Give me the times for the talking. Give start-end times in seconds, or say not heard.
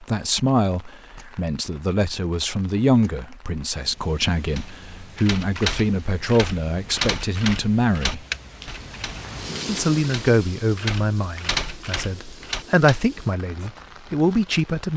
0.0-8.2, 9.7-14.9.